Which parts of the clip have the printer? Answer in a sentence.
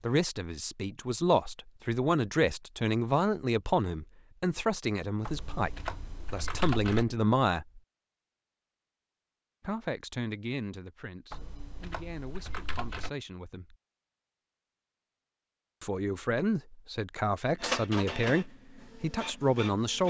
The printer can be heard from 17.6 to 20.0 s.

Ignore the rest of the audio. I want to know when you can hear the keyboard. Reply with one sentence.
The keyboard can be heard from 5.2 to 7.0 s and from 11.3 to 13.1 s.